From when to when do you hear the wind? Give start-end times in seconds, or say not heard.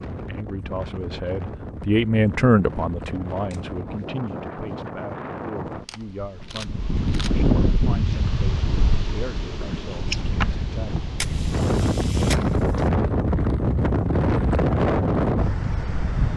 0.0-16.3.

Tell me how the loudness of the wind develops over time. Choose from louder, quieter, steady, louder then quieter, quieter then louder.
louder.